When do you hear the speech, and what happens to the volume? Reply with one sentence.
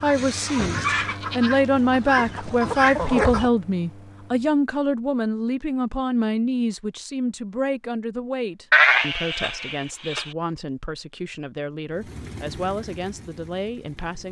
The speech can be heard from 0.0 to 14.2 s, getting quieter.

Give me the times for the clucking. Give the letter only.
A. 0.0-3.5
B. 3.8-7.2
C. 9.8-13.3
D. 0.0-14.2
A.